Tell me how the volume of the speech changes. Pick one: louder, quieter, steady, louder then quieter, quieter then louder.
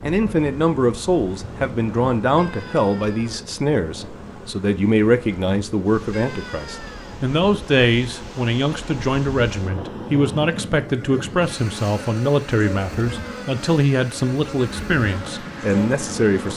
steady.